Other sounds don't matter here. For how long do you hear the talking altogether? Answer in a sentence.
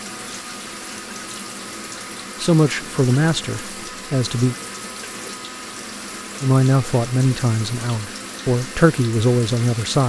You can hear the talking for 6 seconds altogether.